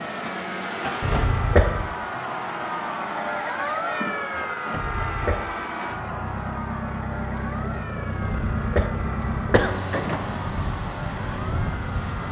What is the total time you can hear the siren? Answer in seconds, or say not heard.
12 s.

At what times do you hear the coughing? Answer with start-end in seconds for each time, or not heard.
1.0-1.9, 4.7-5.5, 8.2-9.8.